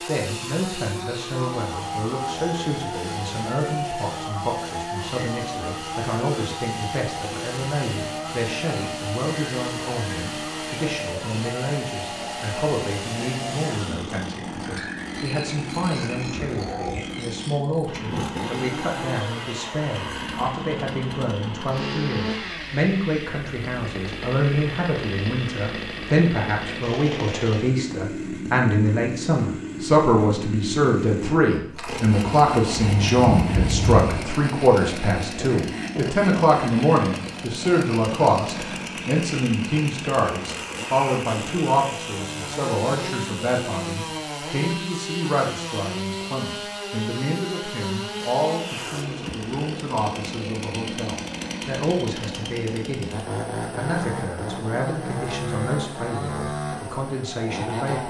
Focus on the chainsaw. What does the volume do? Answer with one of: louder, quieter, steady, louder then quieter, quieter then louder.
steady.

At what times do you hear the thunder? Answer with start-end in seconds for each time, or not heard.
32.8-34.3.